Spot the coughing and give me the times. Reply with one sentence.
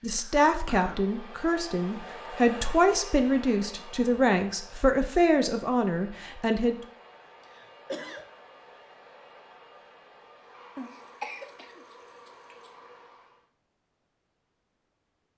You can hear the coughing from 0.0 to 1.1 s, from 7.4 to 8.2 s and from 10.8 to 12.7 s.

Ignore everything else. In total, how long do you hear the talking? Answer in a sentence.
The talking can be heard for 7 seconds in total.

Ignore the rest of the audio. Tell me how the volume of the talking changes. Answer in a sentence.
The loudness of the talking stays about the same.